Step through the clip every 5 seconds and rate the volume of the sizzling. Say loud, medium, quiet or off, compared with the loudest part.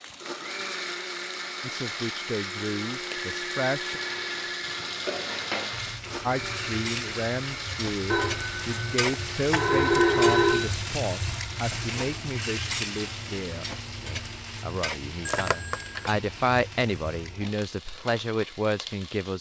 medium, loud, loud, medium.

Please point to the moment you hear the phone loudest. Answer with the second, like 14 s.
10 s.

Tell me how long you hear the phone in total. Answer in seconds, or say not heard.
5 s.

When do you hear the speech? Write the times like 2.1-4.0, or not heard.
1.6-4.0, 6.2-19.3.